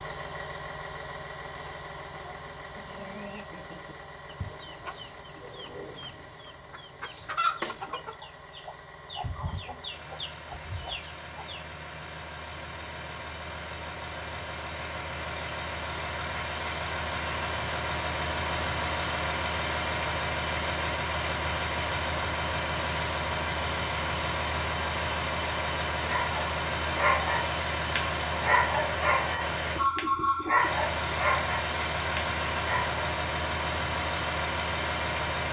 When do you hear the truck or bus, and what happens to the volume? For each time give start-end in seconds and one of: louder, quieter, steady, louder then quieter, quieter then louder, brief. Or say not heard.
0.0-35.4 louder.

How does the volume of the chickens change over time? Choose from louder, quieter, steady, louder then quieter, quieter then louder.
louder then quieter.